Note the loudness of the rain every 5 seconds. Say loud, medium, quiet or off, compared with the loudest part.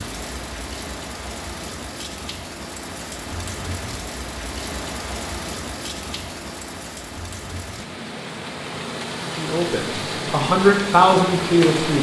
medium, medium, loud.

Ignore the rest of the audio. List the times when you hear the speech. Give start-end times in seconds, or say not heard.
9.3-11.9.